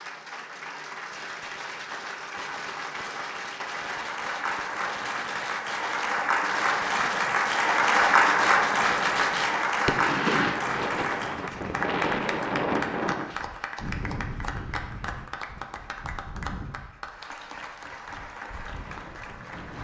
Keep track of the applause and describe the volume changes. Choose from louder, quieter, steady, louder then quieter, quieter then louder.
louder then quieter.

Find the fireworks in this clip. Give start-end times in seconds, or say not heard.
1.1-10.6.